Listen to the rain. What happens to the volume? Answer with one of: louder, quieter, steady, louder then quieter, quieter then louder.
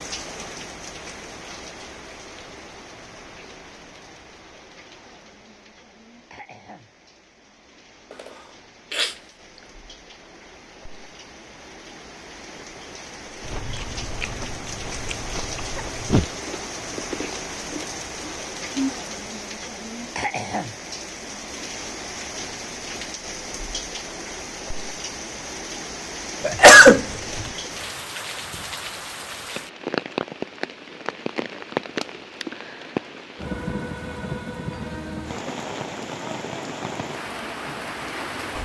louder.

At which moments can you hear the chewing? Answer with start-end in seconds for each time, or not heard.
13.4-18.9.